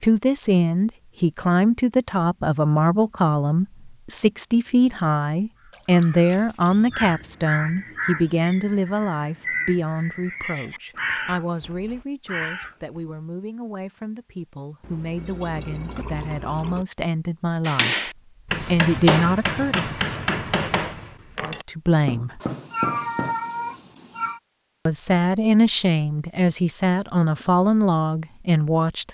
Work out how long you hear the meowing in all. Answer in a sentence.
The meowing can be heard for 4 seconds in total.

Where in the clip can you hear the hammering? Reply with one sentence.
The hammering can be heard from 17.6 to 23.4 s.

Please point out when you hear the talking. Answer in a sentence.
The talking can be heard from 0.0 to 18.1 s, from 18.7 to 19.9 s, from 21.4 to 22.4 s and from 24.9 to 29.0 s.